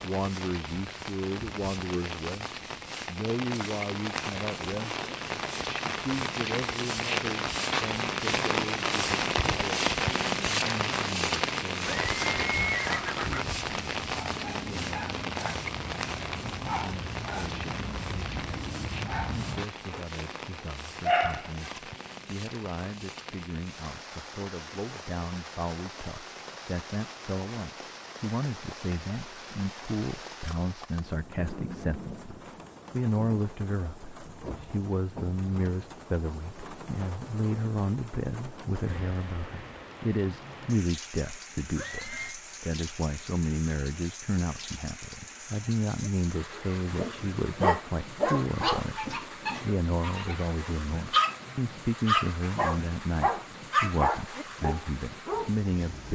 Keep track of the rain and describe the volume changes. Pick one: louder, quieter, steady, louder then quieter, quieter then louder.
quieter.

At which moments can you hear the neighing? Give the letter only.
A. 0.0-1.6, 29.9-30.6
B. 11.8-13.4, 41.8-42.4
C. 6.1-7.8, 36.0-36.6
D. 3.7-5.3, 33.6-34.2
B.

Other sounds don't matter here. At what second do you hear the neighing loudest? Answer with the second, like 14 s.
13 s.